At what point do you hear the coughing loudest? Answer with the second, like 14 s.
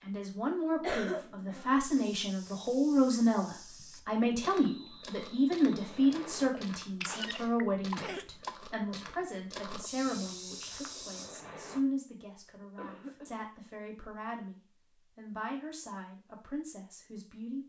1 s.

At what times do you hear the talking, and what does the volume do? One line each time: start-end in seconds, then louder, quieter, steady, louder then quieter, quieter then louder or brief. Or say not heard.
0.0-17.6 quieter.